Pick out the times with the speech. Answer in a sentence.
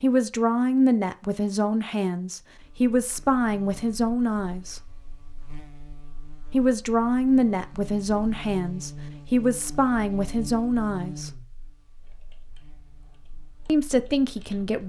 The speech can be heard from 0.0 to 4.9 s, from 6.5 to 11.4 s and from 13.7 to 14.8 s.